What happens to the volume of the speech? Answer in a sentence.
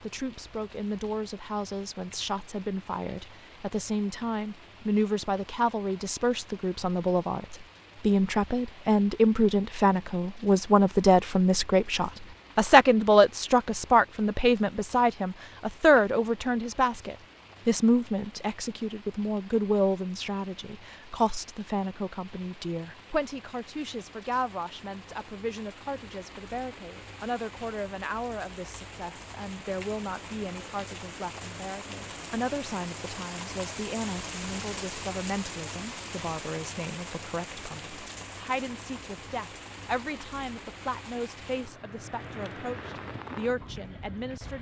The loudness of the speech goes up, then down.